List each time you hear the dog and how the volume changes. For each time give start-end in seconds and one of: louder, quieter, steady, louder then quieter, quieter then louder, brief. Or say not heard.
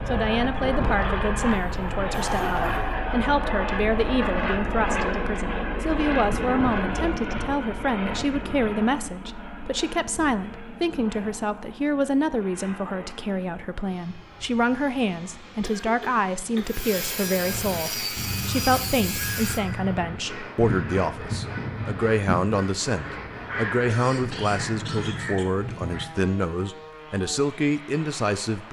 not heard.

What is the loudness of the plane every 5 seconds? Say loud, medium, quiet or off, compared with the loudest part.
loud, loud, quiet, quiet, quiet, quiet.